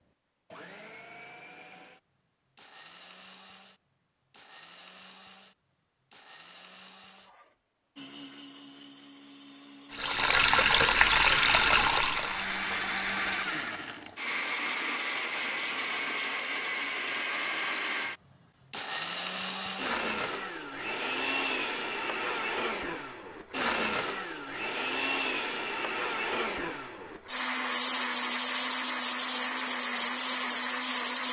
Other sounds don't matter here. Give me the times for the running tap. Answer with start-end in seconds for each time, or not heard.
9.9-13.6.